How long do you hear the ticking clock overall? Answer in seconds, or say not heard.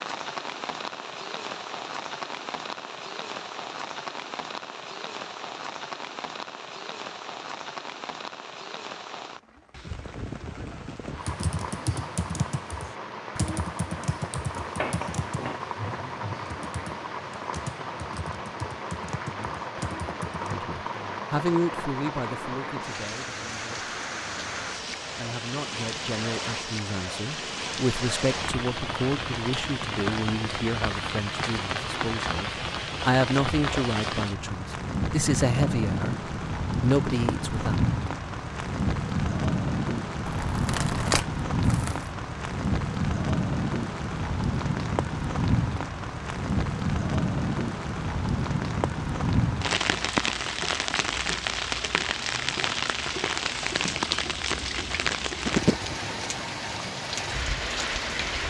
not heard.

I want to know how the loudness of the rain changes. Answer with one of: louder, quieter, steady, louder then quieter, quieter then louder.
louder.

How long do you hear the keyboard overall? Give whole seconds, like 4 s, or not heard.
9 s.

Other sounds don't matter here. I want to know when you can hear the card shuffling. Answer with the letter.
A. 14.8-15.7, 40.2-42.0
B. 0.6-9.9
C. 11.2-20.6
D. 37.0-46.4
A.